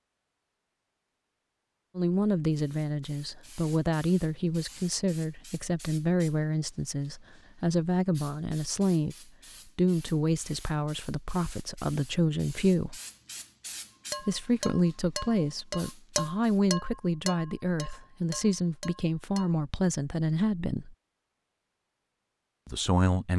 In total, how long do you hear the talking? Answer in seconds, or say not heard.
18 s.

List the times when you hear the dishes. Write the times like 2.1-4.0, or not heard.
14.1-19.5.